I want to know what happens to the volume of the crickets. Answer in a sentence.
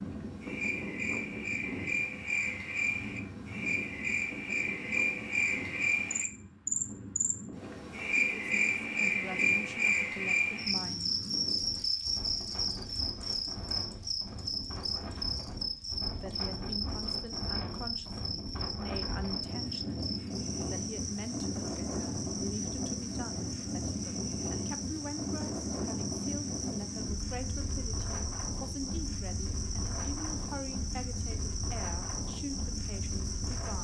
The volume of the crickets goes down.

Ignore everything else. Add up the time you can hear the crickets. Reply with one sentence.
You can hear the crickets for 34 seconds altogether.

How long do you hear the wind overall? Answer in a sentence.
You can hear the wind for 34 seconds altogether.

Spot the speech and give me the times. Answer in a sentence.
The speech can be heard from 8.3 to 11.2 s and from 16.1 to 33.7 s.